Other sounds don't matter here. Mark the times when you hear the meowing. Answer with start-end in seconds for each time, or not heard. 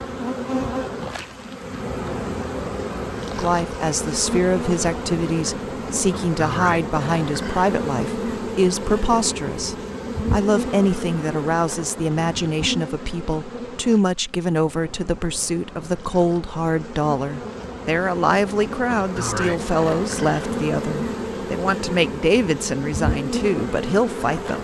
not heard.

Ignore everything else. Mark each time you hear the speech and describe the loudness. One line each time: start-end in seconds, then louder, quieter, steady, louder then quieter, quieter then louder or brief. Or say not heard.
3.4-24.5 steady.